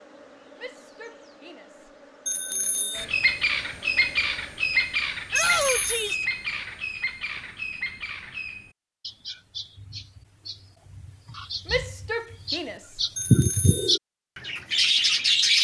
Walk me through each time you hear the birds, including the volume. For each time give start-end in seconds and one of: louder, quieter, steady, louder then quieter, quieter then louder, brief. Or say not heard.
3.0-15.5 quieter then louder.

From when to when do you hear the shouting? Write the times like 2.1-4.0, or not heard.
0.6-1.9, 2.5-3.1, 5.3-6.2, 11.7-13.0.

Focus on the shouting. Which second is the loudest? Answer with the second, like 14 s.
6 s.